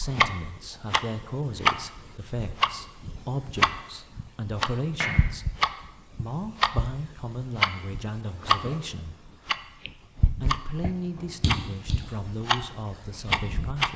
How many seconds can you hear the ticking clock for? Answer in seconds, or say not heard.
14 s.